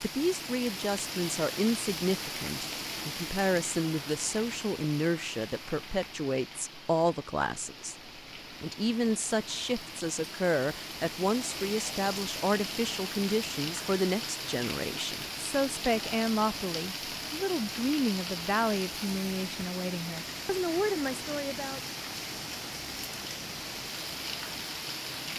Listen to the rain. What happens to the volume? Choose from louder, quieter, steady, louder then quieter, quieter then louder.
quieter then louder.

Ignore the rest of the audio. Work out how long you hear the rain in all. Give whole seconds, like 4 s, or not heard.
25 s.